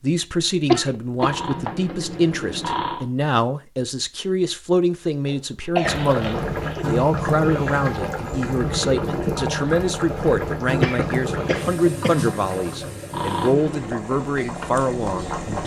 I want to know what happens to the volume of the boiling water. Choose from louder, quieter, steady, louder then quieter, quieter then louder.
quieter.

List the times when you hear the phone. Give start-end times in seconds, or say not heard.
1.1-3.0, 13.1-13.9.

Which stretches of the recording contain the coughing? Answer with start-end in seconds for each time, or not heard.
0.7-1.8, 5.2-6.8, 10.8-12.2.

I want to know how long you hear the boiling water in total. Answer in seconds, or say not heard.
10 s.